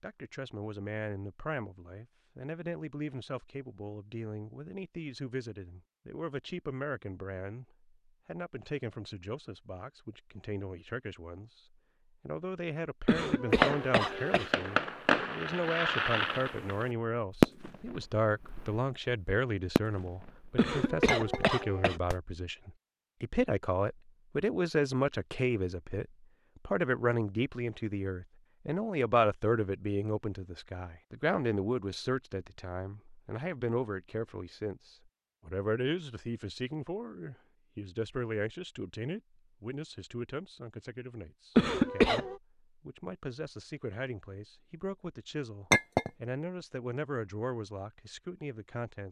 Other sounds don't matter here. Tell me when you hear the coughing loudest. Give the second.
42 s.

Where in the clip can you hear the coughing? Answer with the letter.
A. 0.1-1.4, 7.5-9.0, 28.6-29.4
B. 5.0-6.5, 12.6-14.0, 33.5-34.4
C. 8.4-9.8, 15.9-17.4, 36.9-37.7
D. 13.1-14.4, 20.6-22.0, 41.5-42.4
D.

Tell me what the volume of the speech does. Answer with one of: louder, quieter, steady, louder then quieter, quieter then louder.
louder then quieter.